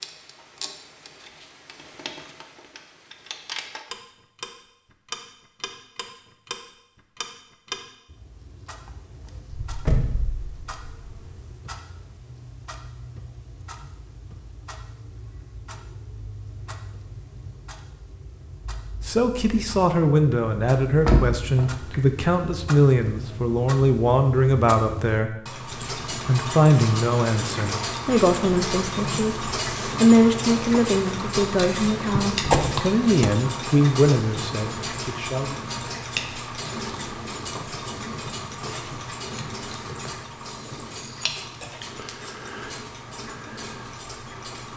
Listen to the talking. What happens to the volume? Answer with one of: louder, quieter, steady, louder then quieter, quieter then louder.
steady.